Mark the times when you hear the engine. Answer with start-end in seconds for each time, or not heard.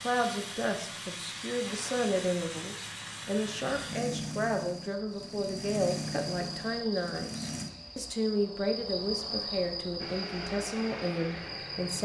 0.0-8.2, 10.0-12.0.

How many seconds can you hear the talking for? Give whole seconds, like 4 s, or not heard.
12 s.